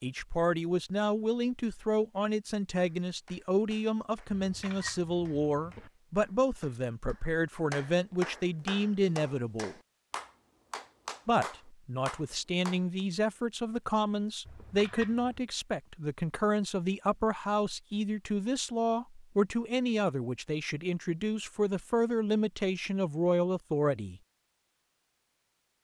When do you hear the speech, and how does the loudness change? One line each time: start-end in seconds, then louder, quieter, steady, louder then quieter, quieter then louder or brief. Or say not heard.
0.0-9.8 steady
11.2-24.2 steady.